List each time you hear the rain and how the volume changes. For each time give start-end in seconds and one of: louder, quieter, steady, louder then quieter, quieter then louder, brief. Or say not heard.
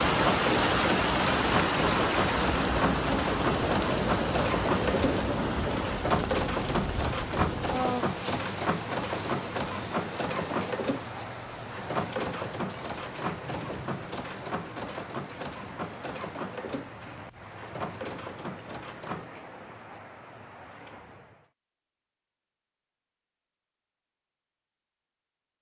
0.0-21.5 quieter.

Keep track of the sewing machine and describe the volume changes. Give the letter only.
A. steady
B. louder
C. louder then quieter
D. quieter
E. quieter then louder
D.